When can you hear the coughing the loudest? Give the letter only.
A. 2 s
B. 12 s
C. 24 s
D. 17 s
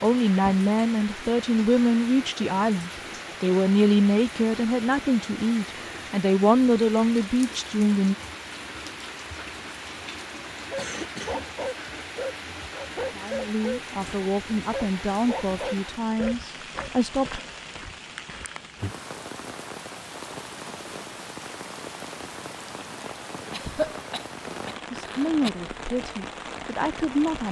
C.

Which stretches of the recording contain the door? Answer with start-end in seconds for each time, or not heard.
not heard.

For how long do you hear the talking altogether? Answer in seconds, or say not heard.
15 s.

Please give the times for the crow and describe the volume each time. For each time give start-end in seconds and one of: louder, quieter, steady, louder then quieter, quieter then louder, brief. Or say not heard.
not heard.